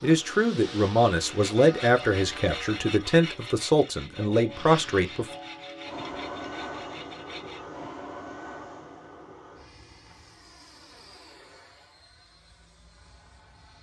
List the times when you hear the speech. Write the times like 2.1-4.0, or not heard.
0.0-5.2.